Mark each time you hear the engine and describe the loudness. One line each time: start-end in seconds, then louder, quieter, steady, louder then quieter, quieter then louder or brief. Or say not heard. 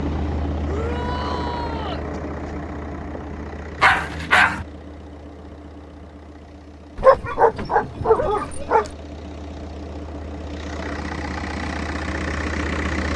0.0-13.1 quieter then louder.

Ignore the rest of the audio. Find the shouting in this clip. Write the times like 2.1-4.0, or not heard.
0.7-2.0.